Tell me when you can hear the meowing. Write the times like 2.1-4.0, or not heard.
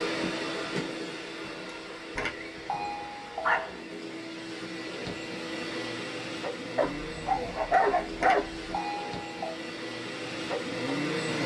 not heard.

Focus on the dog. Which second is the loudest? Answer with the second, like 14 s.
8 s.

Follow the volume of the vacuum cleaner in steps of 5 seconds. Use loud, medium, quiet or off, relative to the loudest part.
medium, medium, loud.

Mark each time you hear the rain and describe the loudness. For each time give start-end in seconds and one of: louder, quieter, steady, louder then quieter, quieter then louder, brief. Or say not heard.
not heard.